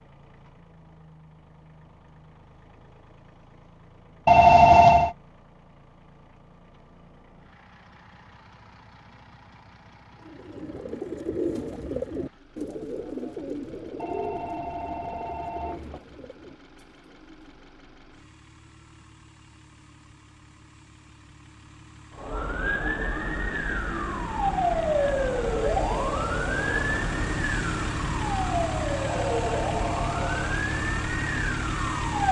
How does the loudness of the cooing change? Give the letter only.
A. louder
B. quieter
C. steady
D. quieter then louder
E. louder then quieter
B.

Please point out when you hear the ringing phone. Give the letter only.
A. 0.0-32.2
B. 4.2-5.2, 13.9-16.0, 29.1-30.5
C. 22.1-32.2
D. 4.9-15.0
B.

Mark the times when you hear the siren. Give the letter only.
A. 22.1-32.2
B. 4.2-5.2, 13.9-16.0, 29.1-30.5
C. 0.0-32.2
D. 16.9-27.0
A.